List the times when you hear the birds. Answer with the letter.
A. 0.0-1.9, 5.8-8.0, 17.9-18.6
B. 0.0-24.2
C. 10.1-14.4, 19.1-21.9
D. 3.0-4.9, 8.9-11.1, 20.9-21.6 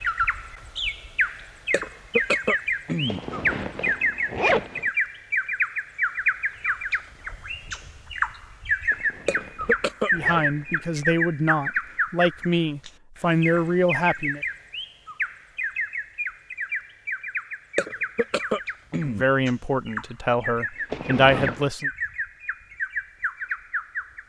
B.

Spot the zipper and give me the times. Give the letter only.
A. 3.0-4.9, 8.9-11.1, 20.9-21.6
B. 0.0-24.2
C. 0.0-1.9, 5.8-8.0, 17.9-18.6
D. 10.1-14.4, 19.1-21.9
A.